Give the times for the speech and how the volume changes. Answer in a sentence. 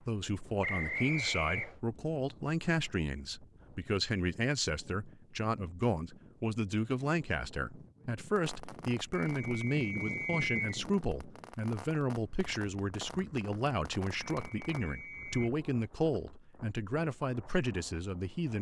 The speech can be heard from 0.1 to 18.5 s, at a steady volume.